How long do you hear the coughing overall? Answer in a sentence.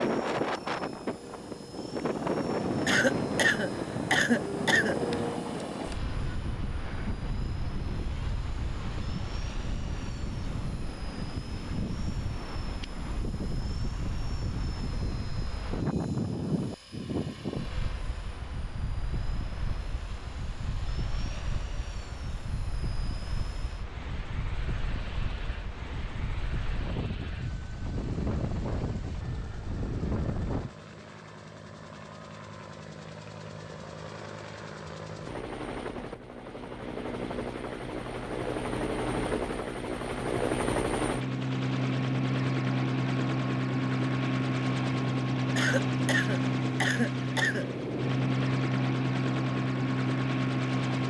The coughing can be heard for 4 seconds in total.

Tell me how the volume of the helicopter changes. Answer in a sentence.
The loudness of the helicopter goes up.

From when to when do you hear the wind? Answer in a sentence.
The wind can be heard from 0.0 to 30.8 s.